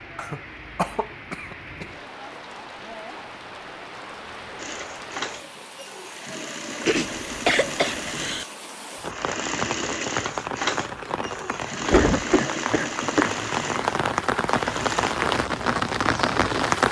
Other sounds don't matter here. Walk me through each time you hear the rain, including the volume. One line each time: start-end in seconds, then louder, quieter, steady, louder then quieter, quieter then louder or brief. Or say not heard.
0.0-16.8 louder.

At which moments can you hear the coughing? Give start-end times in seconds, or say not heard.
0.1-1.9, 6.8-8.4, 11.9-13.5.